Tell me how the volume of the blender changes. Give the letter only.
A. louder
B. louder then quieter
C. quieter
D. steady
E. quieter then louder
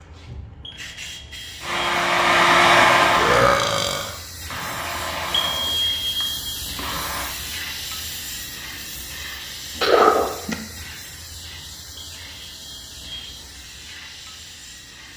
C.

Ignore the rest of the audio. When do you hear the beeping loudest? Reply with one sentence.
The volume of the beeping peaks at 6 seconds.